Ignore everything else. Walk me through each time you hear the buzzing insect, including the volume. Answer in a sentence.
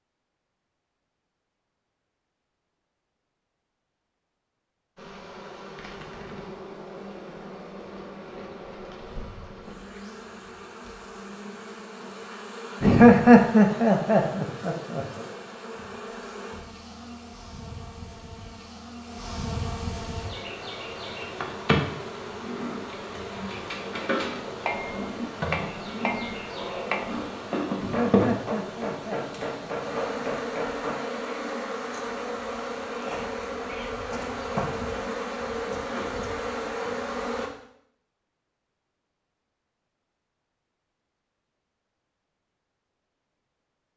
You can hear the buzzing insect from 5.0 to 37.5 s, getting louder.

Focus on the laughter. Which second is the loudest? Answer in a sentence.
The volume of the laughter peaks at 13 seconds.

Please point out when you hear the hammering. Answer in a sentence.
You can hear the hammering from 23.4 to 31.1 s.